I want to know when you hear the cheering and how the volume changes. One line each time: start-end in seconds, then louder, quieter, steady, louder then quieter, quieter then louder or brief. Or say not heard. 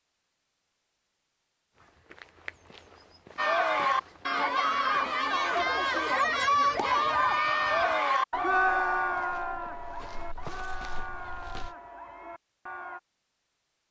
3.4-13.0 quieter.